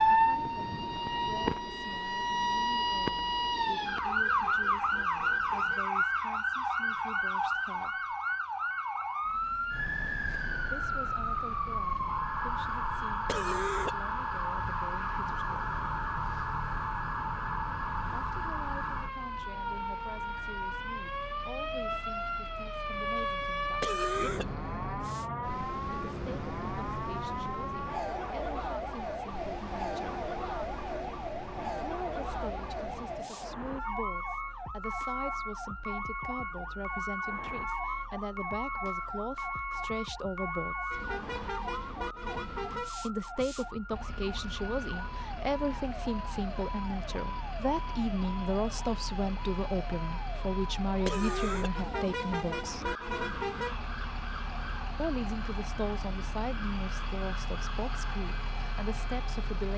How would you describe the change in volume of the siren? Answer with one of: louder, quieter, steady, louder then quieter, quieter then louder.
quieter.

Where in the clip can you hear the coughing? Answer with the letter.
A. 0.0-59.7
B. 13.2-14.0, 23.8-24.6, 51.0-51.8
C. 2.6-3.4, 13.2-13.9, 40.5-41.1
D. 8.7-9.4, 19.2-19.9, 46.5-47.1
B.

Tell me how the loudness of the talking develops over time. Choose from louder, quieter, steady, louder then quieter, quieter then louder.
louder.